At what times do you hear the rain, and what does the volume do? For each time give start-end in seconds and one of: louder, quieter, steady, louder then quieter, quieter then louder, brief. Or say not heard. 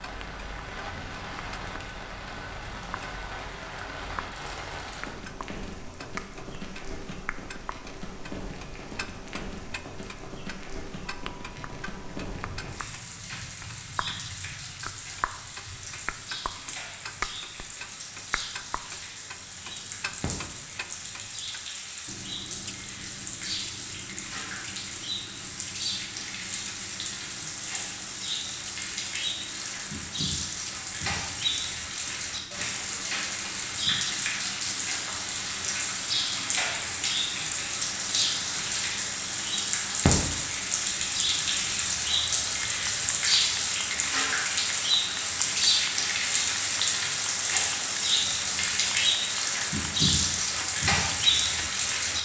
0.0-52.2 louder.